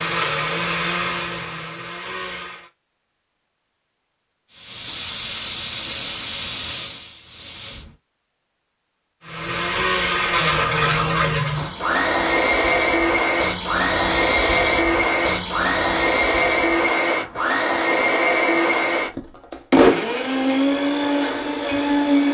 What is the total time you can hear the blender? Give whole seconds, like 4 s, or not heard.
16 s.